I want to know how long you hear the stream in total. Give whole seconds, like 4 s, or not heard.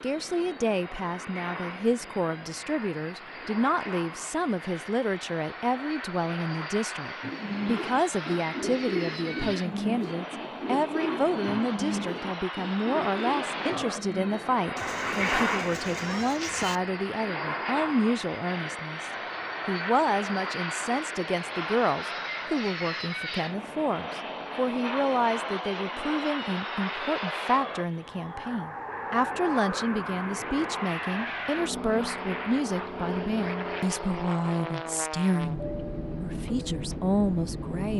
not heard.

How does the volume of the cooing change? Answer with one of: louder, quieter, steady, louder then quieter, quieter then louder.
quieter.